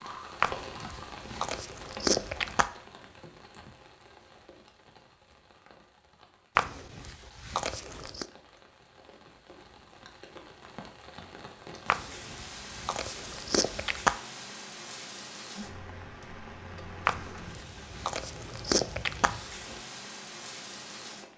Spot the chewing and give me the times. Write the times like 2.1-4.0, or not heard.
0.4-2.7, 6.5-8.2, 11.8-14.2, 17.1-19.8.